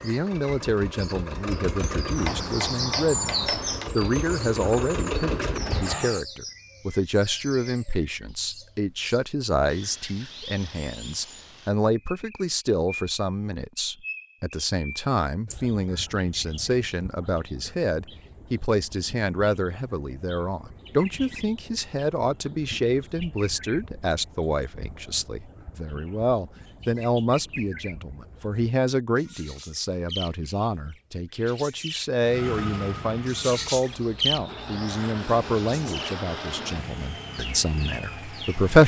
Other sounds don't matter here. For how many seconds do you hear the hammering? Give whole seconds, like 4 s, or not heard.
2 s.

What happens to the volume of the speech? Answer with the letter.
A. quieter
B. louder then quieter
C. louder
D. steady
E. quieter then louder
D.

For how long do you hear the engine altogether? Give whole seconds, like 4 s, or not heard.
13 s.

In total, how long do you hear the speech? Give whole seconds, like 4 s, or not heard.
39 s.